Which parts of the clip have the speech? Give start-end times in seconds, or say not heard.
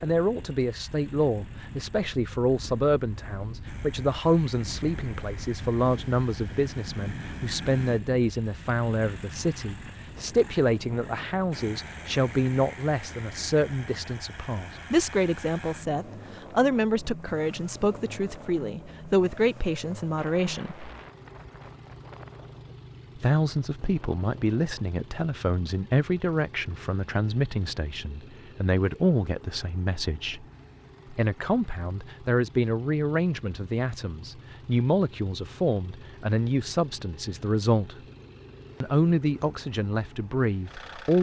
0.0-20.9, 23.1-30.4, 31.1-38.0, 38.8-41.1.